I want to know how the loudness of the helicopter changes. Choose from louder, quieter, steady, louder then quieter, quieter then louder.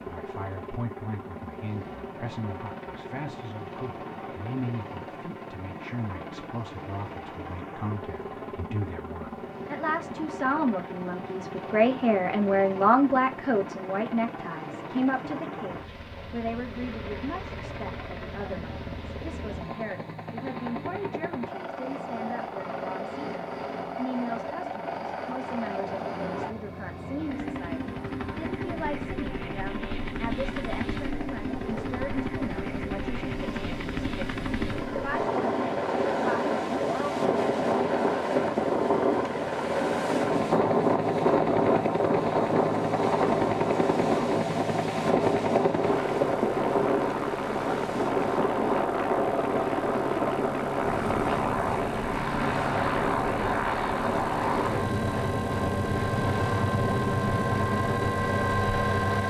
louder.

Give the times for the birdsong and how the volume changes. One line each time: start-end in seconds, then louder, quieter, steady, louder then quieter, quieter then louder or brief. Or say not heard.
not heard.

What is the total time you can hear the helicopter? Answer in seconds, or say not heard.
59 s.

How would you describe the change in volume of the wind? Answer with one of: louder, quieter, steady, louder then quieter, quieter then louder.
louder then quieter.